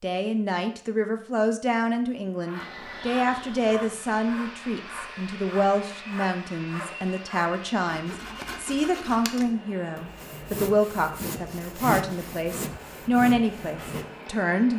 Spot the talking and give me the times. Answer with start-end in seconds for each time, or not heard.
0.0-14.7.